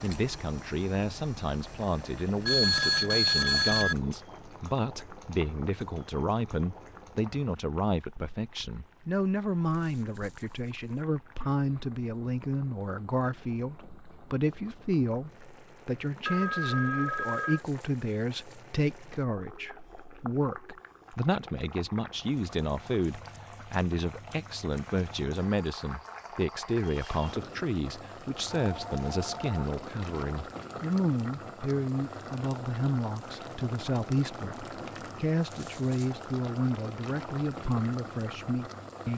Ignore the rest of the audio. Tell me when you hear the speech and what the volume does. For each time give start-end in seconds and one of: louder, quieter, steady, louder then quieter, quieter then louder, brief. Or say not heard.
0.0-39.1 steady.